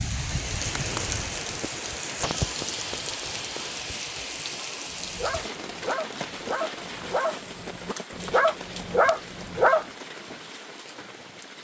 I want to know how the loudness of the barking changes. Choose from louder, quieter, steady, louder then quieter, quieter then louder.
louder.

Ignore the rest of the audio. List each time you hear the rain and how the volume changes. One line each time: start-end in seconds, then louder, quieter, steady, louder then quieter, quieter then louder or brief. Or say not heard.
0.0-11.5 quieter.